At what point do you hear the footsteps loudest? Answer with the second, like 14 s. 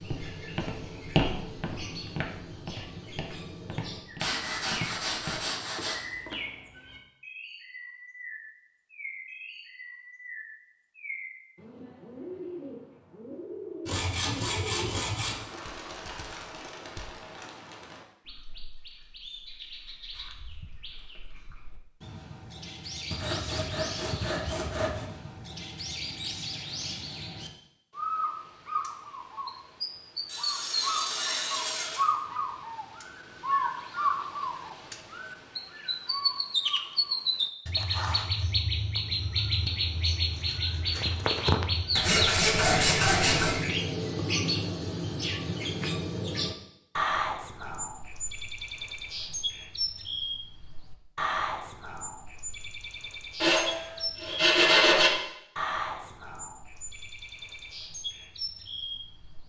1 s.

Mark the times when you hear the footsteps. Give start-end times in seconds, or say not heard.
0.0-6.6.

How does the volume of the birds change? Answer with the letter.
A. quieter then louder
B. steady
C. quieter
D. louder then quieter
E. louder
D.